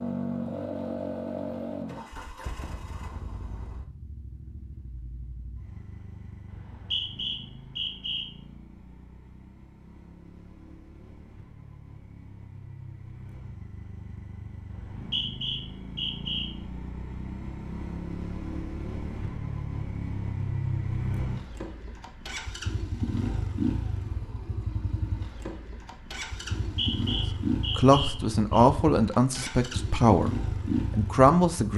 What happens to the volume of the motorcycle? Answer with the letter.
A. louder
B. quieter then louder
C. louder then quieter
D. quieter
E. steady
B.